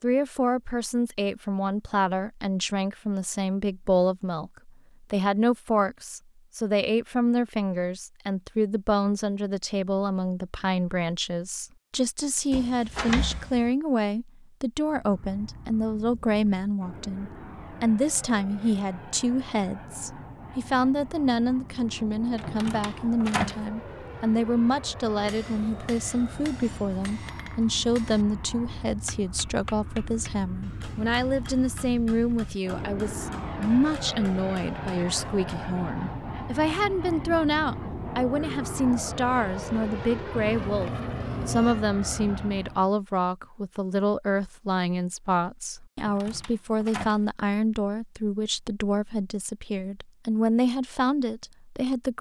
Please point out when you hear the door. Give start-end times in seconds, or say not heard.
12.5-13.7, 22.4-23.6, 46.0-47.2.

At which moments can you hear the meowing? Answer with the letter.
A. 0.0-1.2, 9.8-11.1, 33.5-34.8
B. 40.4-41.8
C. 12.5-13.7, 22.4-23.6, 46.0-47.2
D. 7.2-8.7
B.